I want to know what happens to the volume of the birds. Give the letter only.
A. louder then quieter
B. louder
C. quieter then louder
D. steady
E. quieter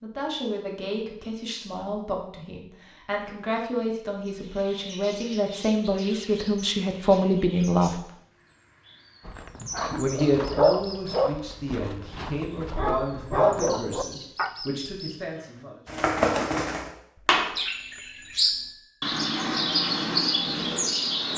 B.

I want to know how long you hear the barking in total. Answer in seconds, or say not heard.
5 s.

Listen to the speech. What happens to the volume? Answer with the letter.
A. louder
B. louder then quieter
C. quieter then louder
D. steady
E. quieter
B.